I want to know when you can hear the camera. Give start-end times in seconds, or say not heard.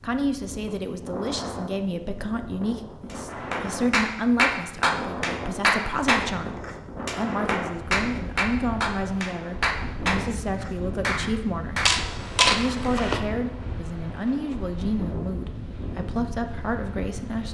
11.8-13.2.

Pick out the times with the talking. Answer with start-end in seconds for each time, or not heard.
0.0-17.4.